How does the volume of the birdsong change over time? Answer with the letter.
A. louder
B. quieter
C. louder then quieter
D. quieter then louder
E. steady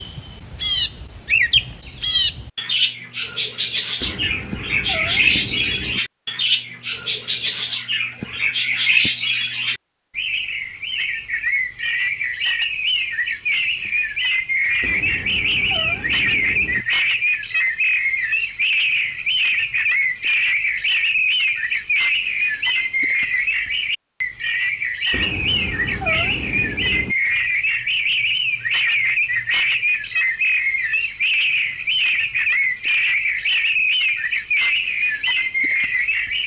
E.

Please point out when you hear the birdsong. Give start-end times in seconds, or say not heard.
0.0-36.4.